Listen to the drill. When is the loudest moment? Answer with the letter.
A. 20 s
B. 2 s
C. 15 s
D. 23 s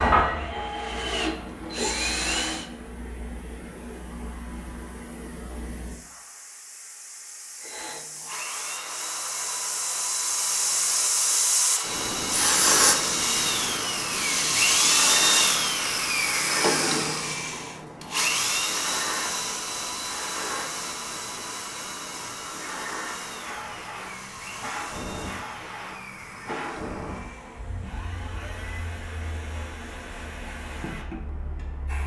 C.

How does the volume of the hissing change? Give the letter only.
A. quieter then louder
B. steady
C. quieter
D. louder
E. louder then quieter
E.